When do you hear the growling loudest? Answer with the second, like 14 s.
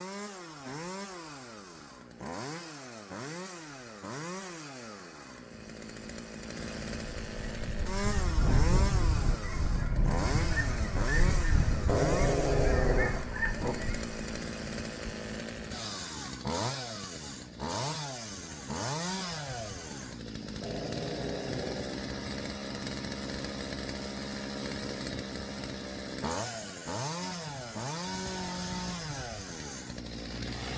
12 s.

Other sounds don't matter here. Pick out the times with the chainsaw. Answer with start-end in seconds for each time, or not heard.
0.0-30.7.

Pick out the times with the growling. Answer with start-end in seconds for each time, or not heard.
11.8-13.8, 20.5-22.0.